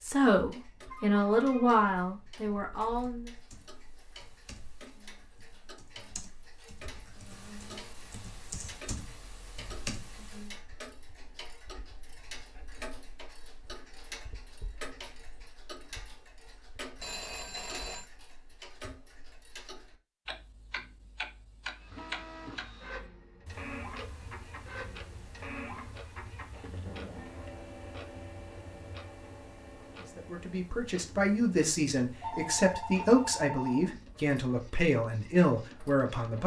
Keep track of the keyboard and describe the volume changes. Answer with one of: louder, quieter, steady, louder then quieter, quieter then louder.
louder.